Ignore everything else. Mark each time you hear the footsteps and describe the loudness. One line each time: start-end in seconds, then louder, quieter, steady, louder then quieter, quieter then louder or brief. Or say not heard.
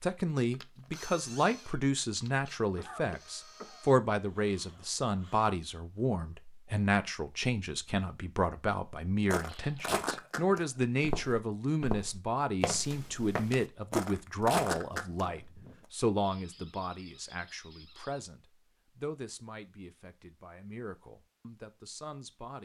9.2-15.2 quieter then louder.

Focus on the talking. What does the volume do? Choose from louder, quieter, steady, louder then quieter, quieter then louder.
quieter.